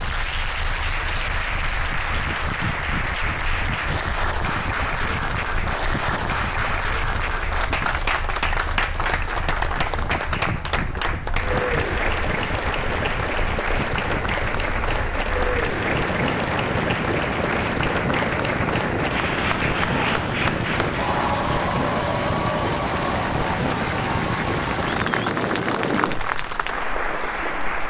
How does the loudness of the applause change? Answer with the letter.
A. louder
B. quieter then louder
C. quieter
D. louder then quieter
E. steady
E.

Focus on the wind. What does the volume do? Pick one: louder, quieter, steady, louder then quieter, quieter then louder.
louder.